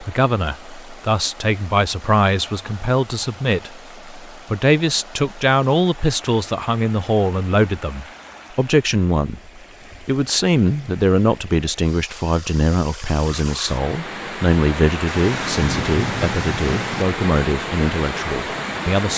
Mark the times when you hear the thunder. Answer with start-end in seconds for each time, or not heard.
15.1-17.1.